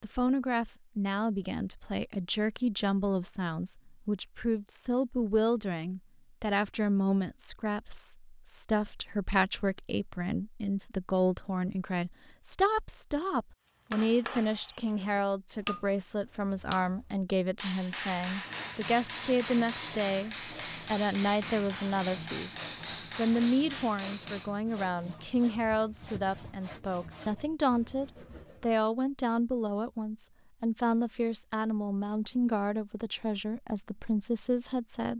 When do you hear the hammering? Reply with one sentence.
The hammering can be heard from 13.9 to 24.5 s.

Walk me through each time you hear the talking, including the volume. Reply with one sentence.
You can hear the talking from 0.0 to 35.1 s, at a steady volume.